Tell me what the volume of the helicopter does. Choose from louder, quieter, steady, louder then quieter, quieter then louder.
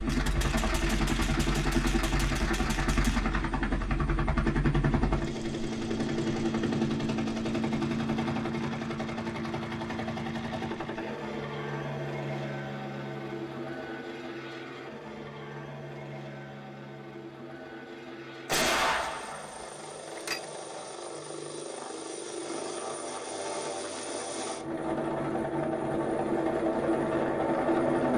quieter then louder.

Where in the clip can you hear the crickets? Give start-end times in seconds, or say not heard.
not heard.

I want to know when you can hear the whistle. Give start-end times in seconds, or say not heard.
not heard.